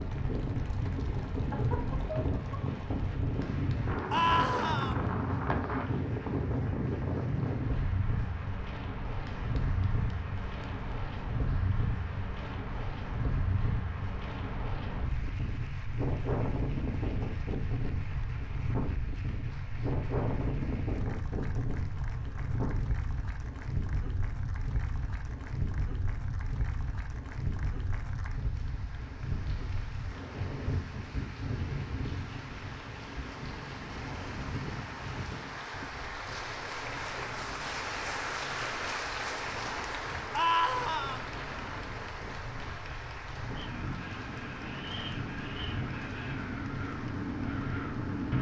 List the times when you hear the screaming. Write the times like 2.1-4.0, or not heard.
4.1-5.0, 40.3-41.2.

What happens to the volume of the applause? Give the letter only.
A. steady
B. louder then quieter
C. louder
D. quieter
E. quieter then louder
C.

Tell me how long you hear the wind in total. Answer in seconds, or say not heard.
48 s.